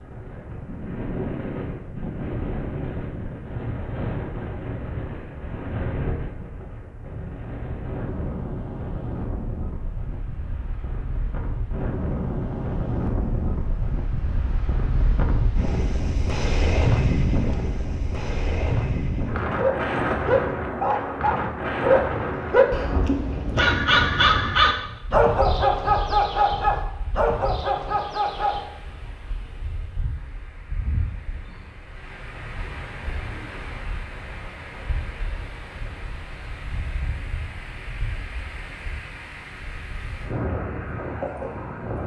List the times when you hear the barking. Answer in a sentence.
The barking can be heard from 19.6 to 28.6 s.